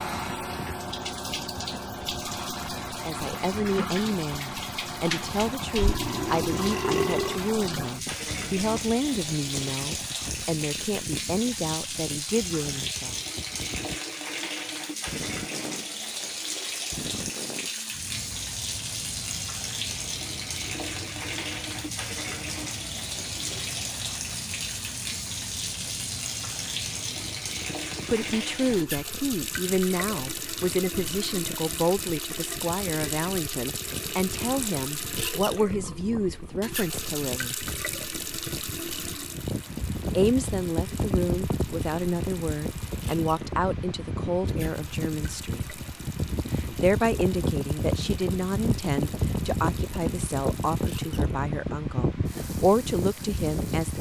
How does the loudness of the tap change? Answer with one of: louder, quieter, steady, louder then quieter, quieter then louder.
quieter.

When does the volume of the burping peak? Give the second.
7 s.